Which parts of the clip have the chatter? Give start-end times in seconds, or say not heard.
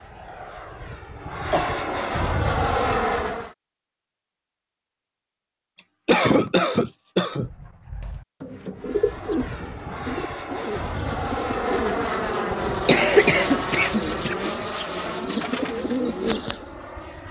not heard.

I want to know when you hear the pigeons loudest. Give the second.
16 s.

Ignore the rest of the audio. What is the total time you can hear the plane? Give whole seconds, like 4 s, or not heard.
12 s.